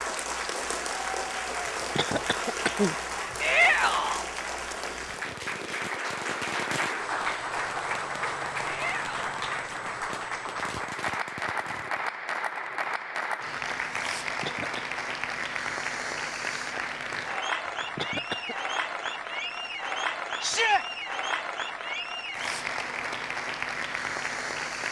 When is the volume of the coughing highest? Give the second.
3 s.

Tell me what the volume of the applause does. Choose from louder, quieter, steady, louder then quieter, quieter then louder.
steady.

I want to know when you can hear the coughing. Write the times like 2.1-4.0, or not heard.
1.6-3.4, 14.2-14.8, 17.6-18.6.